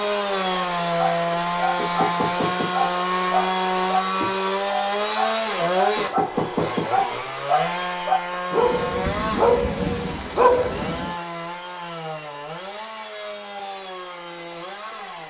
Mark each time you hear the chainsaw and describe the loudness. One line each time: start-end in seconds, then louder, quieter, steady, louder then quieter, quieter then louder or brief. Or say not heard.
0.0-15.2 quieter.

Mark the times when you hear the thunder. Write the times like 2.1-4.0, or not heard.
8.6-11.2.